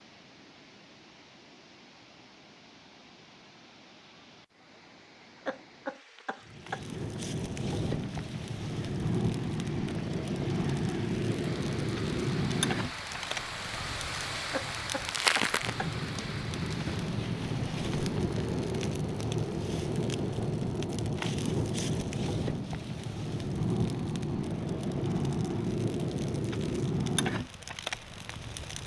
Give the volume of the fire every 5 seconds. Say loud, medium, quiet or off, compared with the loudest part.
off, loud, loud, loud, loud, loud.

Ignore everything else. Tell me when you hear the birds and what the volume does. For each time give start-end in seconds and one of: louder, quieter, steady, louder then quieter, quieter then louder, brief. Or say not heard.
not heard.